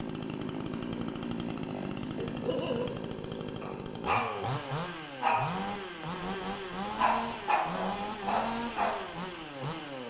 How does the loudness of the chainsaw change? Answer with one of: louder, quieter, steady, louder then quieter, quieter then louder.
steady.